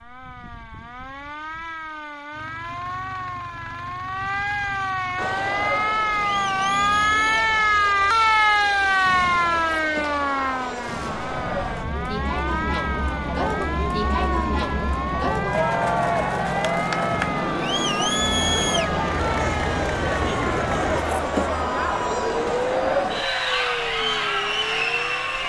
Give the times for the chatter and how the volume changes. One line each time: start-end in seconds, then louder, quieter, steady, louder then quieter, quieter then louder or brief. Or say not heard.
5.2-25.4 louder.